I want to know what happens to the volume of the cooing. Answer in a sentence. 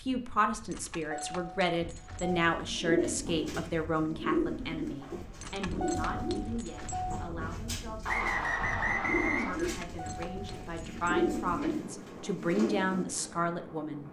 The volume of the cooing goes down, then up.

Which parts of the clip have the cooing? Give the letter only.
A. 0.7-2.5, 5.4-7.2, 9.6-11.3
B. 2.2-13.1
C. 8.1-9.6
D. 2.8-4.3
B.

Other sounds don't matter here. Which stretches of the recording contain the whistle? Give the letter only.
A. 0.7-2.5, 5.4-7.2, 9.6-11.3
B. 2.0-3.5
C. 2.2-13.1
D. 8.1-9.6
D.